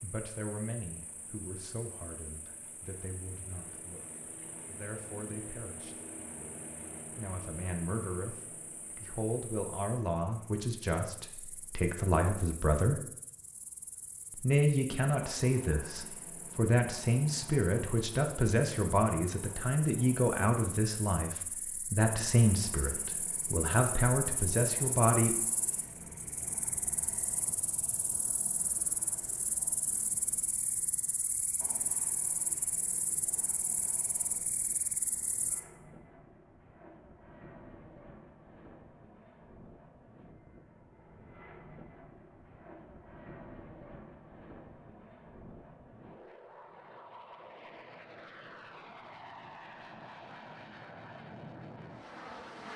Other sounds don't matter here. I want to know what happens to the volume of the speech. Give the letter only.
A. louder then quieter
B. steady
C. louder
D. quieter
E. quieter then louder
C.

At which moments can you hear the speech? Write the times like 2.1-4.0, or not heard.
0.0-6.0, 7.1-13.0, 14.3-25.4.